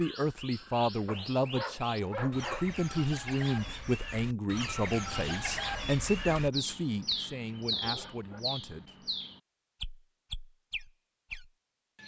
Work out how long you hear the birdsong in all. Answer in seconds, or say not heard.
12 s.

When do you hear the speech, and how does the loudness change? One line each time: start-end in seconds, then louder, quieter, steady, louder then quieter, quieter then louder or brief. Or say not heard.
0.0-8.9 quieter.